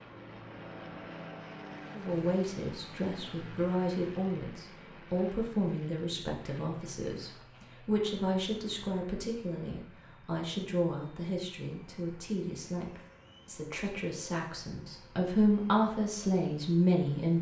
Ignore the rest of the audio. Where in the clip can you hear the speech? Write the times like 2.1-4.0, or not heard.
1.9-17.3.